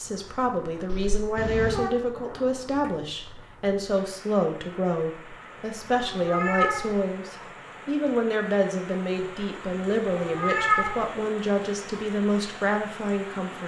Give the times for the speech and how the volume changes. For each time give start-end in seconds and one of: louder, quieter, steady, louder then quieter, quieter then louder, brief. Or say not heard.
0.0-13.6 steady.